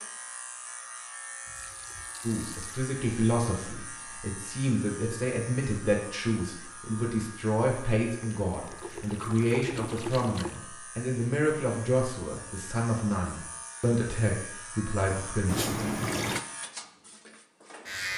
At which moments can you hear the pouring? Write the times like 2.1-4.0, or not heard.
1.4-2.9, 8.2-10.6, 15.4-16.4.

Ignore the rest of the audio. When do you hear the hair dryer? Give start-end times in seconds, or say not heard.
not heard.